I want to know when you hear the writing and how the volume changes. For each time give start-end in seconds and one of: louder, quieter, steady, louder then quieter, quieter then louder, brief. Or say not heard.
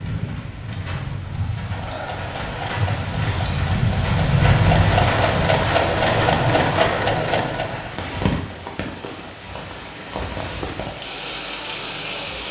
not heard.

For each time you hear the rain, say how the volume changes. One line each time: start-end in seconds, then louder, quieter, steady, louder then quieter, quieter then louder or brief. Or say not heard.
0.0-12.4 louder then quieter.